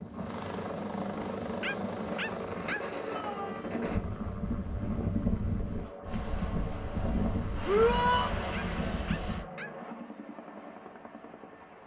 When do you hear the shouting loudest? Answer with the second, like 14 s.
8 s.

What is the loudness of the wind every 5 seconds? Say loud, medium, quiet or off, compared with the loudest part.
loud, loud, off.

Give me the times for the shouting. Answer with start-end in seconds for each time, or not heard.
3.0-3.8, 7.7-8.3.